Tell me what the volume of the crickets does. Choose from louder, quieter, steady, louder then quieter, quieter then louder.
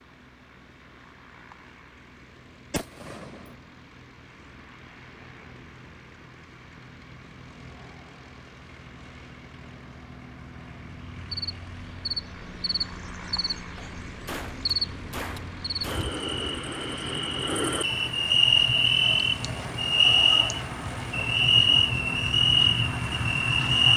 louder.